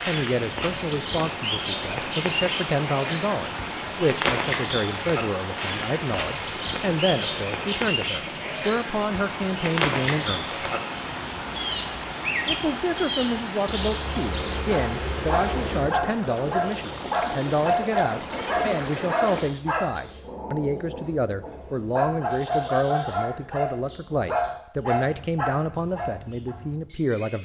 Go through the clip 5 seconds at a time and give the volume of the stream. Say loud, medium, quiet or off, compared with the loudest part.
loud, loud, loud, loud, off, off.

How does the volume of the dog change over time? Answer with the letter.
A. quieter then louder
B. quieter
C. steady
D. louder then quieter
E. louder
A.